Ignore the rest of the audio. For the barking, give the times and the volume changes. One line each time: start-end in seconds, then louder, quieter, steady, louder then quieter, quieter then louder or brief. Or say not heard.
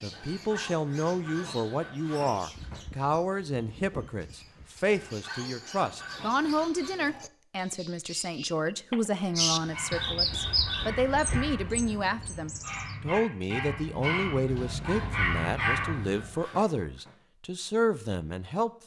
9.2-16.4 louder.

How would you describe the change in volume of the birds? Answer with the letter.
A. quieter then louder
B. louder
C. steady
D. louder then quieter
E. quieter
B.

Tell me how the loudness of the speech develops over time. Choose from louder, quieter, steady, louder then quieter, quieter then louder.
steady.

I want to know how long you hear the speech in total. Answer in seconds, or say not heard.
19 s.